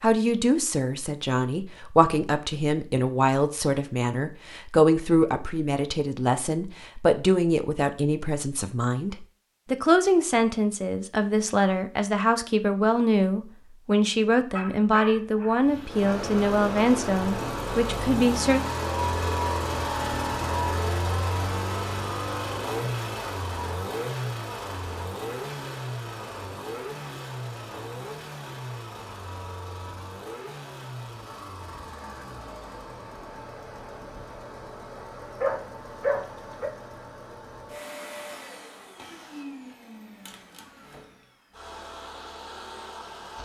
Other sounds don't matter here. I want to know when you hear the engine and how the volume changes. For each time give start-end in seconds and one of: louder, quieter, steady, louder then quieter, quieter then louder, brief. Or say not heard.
15.6-43.4 quieter.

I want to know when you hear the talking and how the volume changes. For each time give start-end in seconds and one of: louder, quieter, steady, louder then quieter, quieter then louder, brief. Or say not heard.
0.0-18.6 steady.